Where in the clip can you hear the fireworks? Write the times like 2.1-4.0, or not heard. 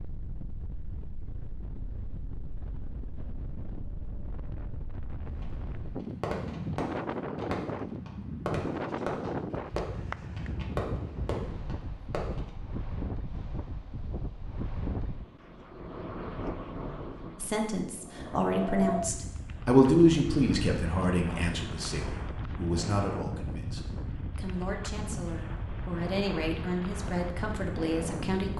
5.4-12.5.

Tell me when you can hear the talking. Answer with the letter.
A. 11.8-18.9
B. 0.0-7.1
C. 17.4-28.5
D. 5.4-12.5
C.